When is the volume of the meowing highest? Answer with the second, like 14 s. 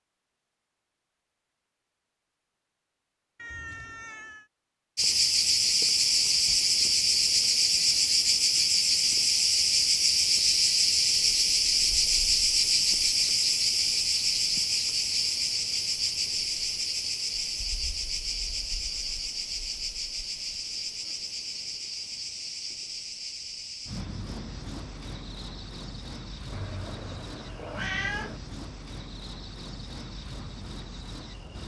28 s.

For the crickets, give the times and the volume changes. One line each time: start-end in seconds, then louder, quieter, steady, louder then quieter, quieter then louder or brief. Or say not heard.
5.0-31.6 quieter.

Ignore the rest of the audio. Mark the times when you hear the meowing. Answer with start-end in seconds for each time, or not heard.
3.4-4.5, 26.5-28.4.